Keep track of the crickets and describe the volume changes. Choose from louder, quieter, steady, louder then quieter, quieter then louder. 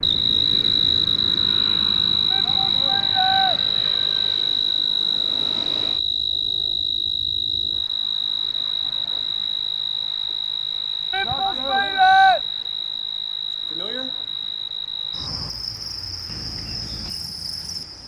quieter.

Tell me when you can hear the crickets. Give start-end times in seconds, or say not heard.
0.0-18.0.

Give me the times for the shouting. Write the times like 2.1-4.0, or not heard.
2.3-3.5, 11.1-12.4.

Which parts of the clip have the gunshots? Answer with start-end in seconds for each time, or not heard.
not heard.